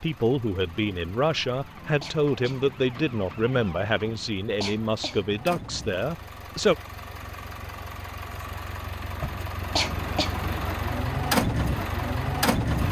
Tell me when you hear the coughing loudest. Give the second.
10 s.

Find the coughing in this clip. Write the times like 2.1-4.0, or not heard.
2.0-2.6, 4.6-5.2, 9.8-10.3.